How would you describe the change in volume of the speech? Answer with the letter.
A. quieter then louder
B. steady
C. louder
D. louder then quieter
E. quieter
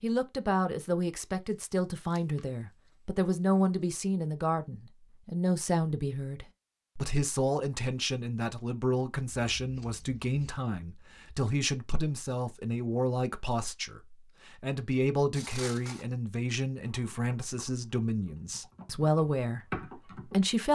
B.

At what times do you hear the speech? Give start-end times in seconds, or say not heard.
0.0-20.6.